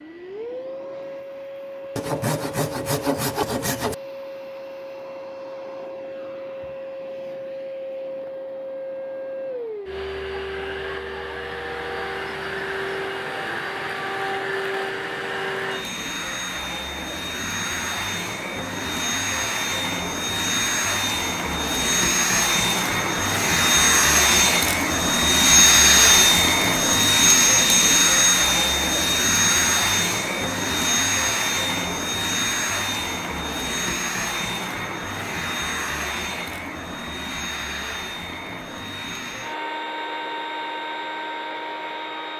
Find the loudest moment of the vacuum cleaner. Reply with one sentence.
The volume of the vacuum cleaner peaks at 26 seconds.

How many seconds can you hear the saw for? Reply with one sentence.
You can hear the saw for 2 seconds altogether.